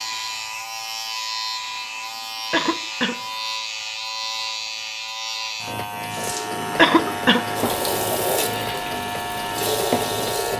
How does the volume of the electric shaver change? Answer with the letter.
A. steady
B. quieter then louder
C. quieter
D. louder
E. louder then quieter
A.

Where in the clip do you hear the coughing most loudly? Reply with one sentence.
The loudest moment of the coughing is at 7 seconds.